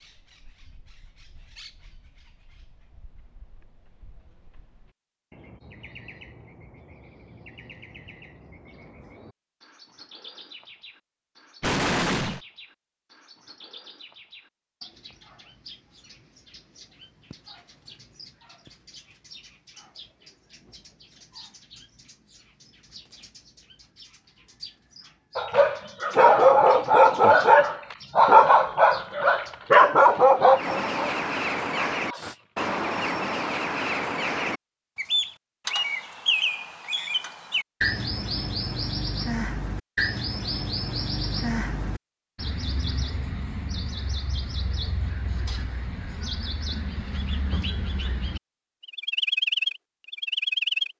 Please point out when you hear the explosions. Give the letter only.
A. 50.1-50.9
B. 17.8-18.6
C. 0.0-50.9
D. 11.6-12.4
D.